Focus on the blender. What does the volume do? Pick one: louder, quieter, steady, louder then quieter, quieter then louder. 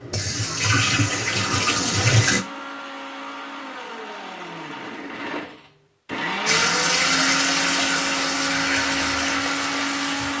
louder.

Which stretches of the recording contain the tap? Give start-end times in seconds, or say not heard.
0.0-2.5, 6.5-10.3.